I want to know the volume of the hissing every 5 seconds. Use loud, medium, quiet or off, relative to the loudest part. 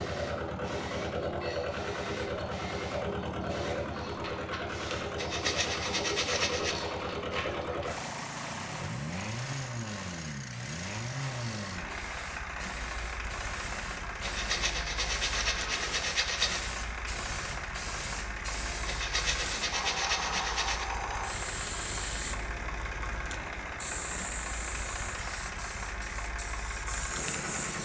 medium, loud, medium, loud, loud, loud.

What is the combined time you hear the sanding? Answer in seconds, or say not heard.
6 s.